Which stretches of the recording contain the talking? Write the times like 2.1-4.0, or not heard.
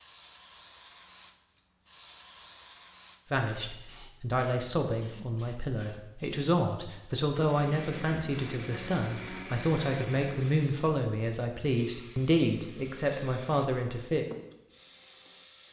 3.3-14.2.